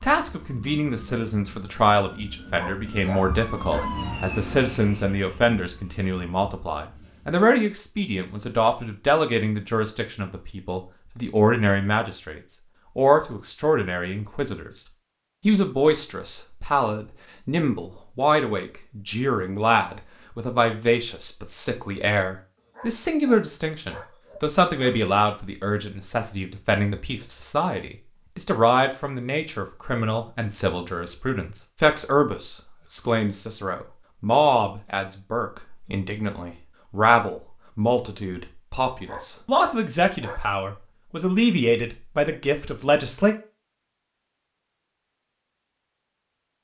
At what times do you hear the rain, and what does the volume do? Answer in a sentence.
The rain can't be heard in this clip.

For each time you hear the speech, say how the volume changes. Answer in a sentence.
You can hear the speech from 0.0 to 14.8 s, at a steady volume; and from 15.4 to 43.4 s, at a steady volume.